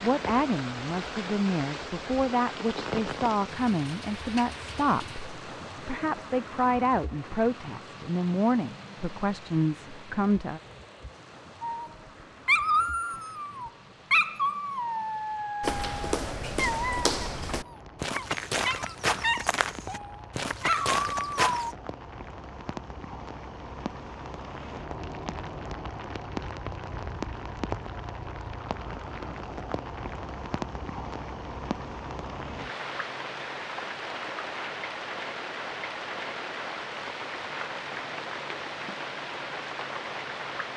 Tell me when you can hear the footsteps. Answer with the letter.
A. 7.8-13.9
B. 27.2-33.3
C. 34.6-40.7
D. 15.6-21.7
D.